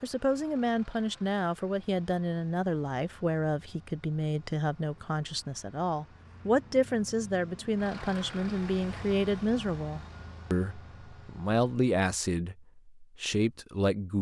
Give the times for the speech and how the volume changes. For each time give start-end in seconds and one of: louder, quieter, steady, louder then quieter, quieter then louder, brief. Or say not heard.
0.0-14.1 steady.